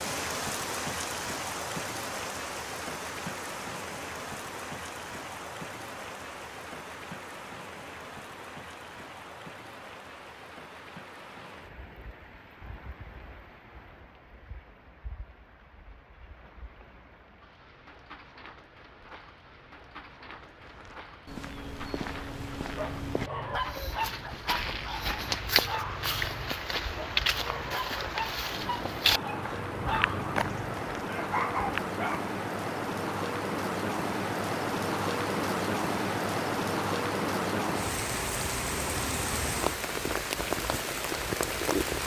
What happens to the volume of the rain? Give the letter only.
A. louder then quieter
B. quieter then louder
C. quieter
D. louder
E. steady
B.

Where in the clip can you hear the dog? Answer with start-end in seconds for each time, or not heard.
22.3-32.2.